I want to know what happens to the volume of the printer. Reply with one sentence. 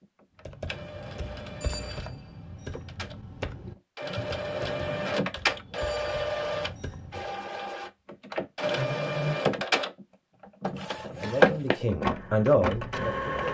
The loudness of the printer goes up.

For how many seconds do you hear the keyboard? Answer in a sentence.
You can hear the keyboard for 7 seconds altogether.